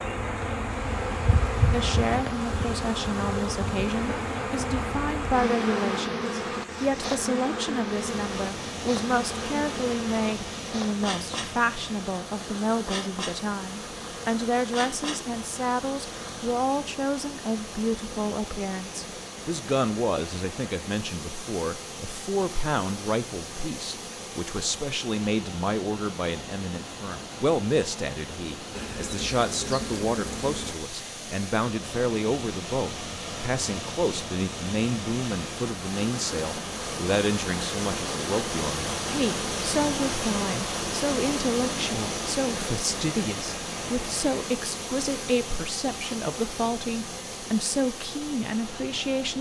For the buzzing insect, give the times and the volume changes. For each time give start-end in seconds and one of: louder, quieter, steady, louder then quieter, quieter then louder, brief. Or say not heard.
0.0-16.6 quieter
28.8-30.8 brief.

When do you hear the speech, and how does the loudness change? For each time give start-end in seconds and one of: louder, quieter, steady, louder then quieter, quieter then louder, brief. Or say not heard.
1.7-49.3 steady.